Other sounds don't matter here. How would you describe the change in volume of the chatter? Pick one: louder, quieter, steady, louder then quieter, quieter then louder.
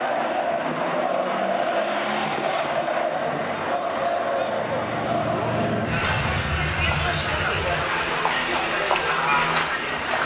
steady.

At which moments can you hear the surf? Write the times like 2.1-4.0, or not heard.
not heard.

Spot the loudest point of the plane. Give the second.
6 s.